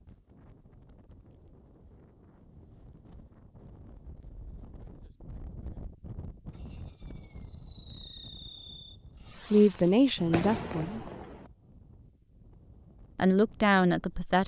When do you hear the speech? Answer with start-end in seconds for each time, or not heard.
9.5-11.0, 13.2-14.4.